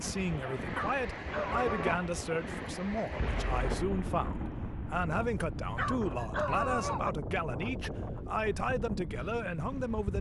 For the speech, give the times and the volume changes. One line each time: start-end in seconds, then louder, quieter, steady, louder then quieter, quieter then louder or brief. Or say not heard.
0.0-10.1 steady.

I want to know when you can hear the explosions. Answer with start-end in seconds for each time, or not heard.
3.1-5.6.